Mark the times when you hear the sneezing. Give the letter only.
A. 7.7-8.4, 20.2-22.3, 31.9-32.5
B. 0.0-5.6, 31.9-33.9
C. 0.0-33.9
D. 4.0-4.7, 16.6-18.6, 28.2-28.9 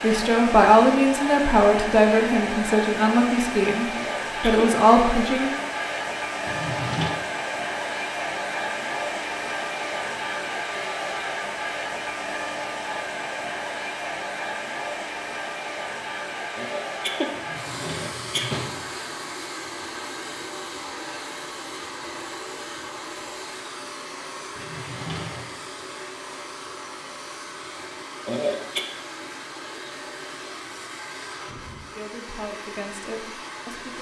D.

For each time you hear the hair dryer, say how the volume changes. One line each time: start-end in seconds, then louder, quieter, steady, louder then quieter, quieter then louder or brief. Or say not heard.
0.0-33.9 quieter.